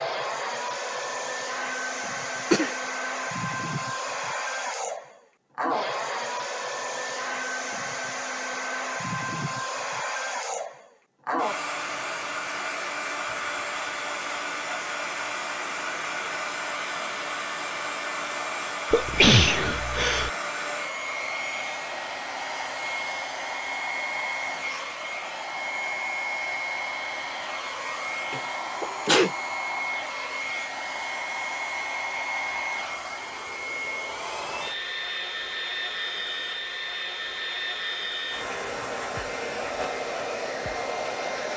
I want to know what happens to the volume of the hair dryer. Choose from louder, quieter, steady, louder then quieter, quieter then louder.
steady.